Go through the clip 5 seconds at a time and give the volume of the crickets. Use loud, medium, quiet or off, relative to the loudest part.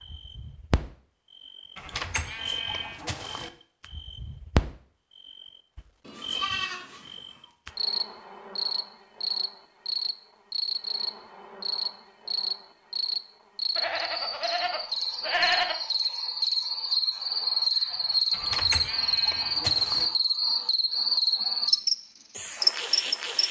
medium, medium, medium, loud, loud.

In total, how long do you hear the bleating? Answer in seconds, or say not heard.
7 s.